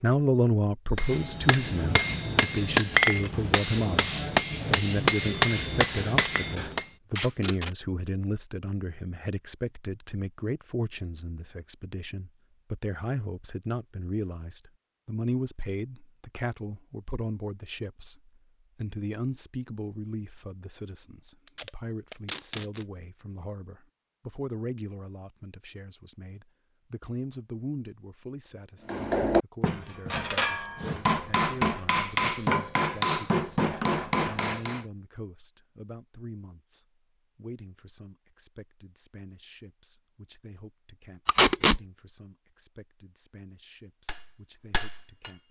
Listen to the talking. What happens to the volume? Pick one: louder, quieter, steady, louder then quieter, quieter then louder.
quieter.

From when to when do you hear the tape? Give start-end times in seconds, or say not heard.
7.2-7.7, 21.4-22.9, 41.2-41.8.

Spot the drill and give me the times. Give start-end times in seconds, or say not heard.
not heard.